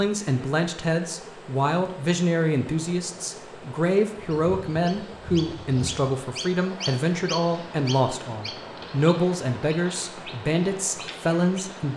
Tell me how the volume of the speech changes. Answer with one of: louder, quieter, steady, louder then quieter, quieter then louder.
steady.